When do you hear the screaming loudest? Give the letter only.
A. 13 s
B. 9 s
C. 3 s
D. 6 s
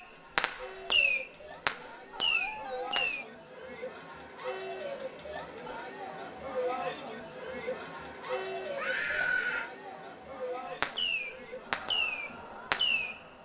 B.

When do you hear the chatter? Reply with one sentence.
You can hear the chatter from 0.0 to 13.4 s.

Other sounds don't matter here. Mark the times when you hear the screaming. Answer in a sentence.
The screaming can be heard from 2.1 to 3.0 s and from 8.8 to 9.7 s.